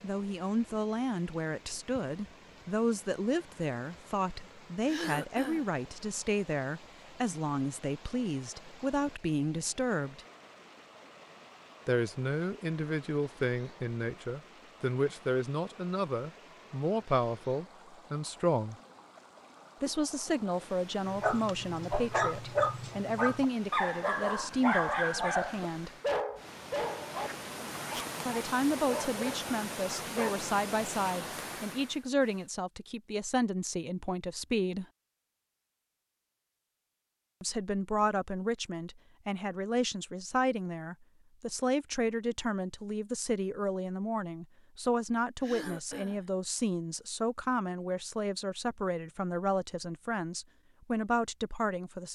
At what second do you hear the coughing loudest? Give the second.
5 s.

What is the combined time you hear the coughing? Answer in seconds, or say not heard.
2 s.